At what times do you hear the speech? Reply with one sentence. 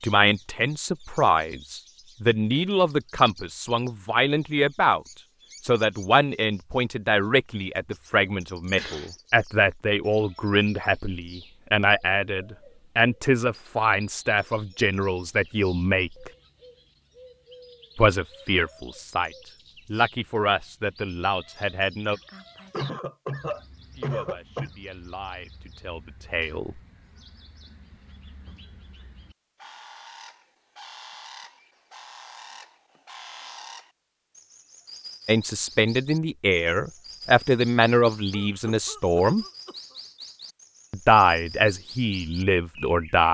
You can hear the speech from 0.0 to 16.3 s, from 17.9 to 22.2 s, from 23.9 to 26.8 s, from 35.2 to 39.5 s and from 40.9 to 43.2 s.